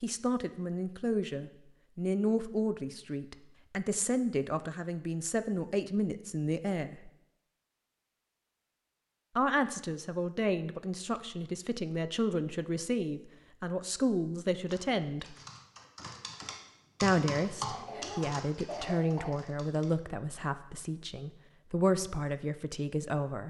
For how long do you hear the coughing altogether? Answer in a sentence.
The coughing can be heard for 2 seconds in total.